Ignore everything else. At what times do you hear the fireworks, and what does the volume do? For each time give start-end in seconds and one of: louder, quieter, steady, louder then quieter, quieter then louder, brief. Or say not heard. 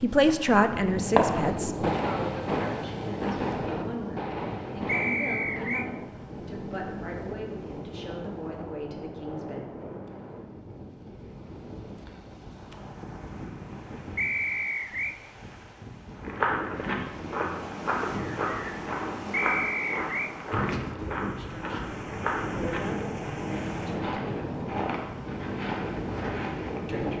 0.1-6.0 quieter.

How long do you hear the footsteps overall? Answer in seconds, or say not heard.
11 s.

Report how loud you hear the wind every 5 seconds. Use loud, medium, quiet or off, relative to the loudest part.
loud, medium, medium, medium, loud, loud.